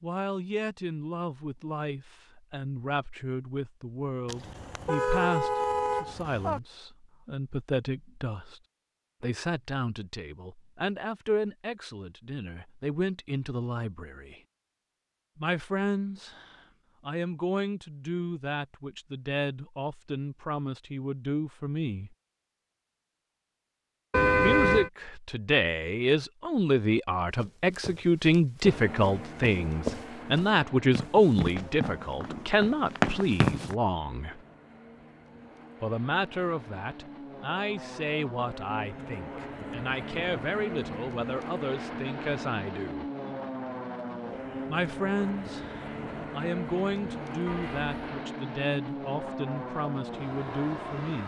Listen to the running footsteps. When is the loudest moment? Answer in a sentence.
The volume of the running footsteps peaks at 33 seconds.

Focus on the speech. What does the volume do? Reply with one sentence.
The loudness of the speech goes up, then down.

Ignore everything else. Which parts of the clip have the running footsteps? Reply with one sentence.
You can hear the running footsteps from 27.3 to 33.8 s.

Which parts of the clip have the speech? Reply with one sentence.
The speech can be heard from 0.0 to 8.6 s, from 9.2 to 14.4 s, from 15.3 to 22.1 s, from 24.4 to 34.4 s, from 35.8 to 43.1 s and from 44.6 to 51.2 s.